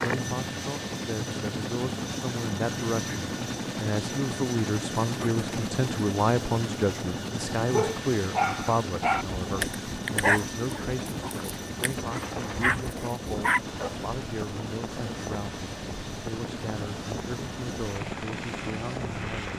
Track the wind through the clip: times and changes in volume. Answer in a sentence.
The wind can be heard from 9.3 to 19.5 s, at a steady volume.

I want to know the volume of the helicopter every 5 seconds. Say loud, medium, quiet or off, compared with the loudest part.
loud, loud, medium, medium.